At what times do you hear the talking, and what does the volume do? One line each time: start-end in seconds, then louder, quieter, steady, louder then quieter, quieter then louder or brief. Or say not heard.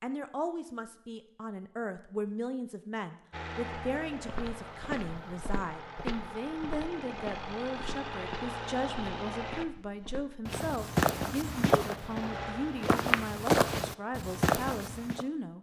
0.0-15.5 steady.